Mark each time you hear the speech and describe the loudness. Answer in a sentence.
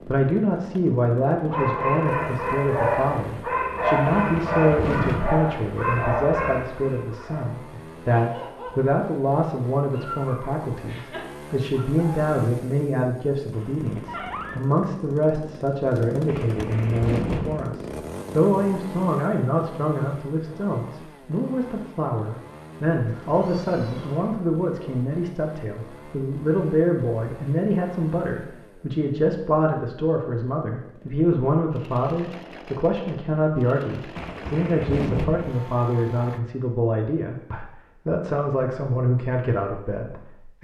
You can hear the speech from 0.1 to 40.5 s, at a steady volume.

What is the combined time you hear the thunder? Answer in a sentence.
You can hear the thunder for 4 seconds altogether.